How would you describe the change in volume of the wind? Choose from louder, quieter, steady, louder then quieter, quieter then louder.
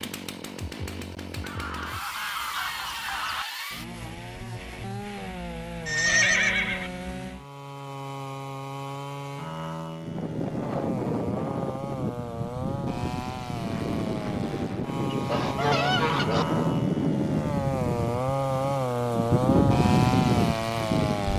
louder.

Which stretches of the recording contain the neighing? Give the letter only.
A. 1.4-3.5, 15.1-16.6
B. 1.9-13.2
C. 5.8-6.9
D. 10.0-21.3
C.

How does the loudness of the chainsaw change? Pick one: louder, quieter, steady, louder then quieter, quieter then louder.
louder.